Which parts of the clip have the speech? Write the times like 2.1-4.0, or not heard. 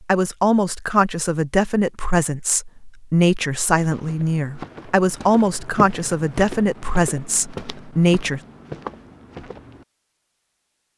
0.1-8.4.